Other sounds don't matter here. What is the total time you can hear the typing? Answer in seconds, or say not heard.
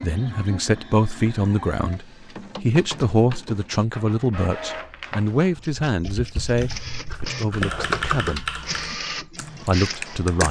5 s.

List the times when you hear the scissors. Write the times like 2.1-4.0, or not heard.
7.1-8.4.